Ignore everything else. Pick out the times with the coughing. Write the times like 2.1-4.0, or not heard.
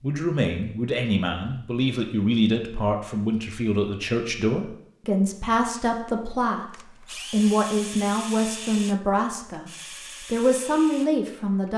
not heard.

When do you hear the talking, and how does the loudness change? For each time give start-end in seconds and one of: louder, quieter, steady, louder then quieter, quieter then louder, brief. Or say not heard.
0.0-11.7 steady.